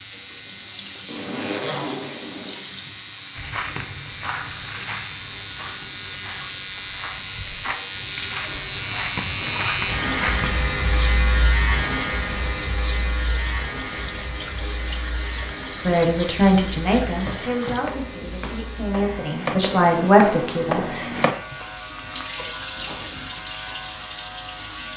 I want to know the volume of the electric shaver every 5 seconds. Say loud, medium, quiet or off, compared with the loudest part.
medium, loud, loud, medium, medium.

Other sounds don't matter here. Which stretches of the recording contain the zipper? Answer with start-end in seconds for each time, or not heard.
1.1-2.6, 8.4-9.8, 22.4-23.2.